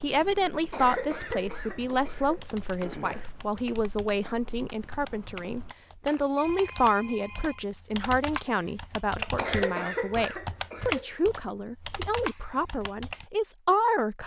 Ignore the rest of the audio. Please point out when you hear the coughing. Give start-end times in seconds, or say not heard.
0.5-3.3, 9.2-11.5.